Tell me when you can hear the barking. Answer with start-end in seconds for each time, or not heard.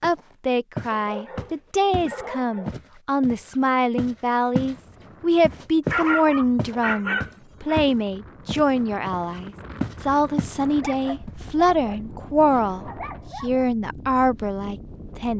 0.9-2.8, 5.9-7.8, 10.8-13.7.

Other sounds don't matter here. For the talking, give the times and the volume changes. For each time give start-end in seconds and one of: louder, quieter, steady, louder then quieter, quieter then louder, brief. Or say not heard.
0.0-15.3 steady.